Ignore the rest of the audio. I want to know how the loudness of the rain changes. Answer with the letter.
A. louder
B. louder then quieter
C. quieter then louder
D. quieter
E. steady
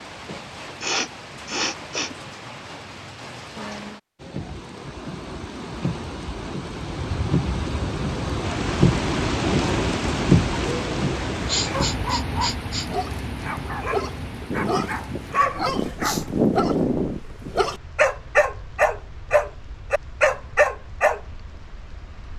B.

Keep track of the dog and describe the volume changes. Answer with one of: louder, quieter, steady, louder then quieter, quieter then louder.
louder.